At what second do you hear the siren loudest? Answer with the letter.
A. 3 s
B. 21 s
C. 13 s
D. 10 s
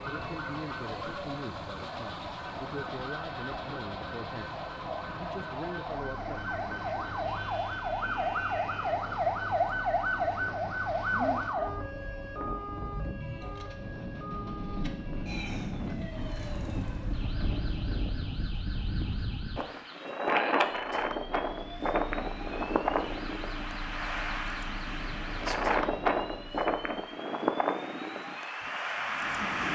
D.